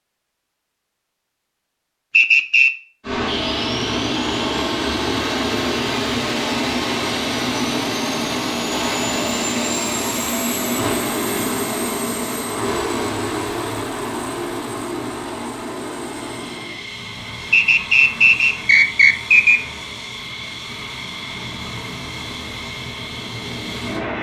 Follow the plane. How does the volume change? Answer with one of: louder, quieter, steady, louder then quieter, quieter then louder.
quieter.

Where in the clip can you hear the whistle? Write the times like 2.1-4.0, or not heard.
2.1-2.7, 17.5-19.6.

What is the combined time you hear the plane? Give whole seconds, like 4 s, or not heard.
21 s.